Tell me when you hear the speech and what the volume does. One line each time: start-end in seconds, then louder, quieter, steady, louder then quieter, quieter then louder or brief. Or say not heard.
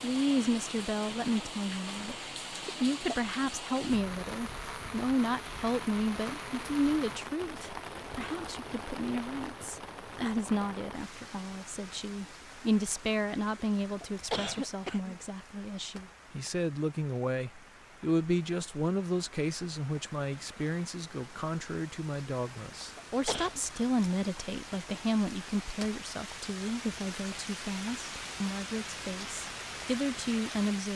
0.0-30.9 steady.